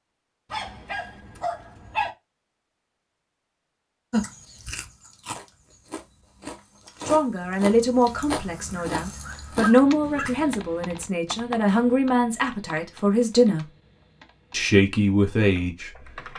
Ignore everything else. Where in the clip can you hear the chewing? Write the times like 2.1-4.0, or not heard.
4.1-10.6.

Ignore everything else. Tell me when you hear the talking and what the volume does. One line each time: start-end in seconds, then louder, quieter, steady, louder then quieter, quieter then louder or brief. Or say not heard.
7.0-13.7 steady
14.5-15.9 brief.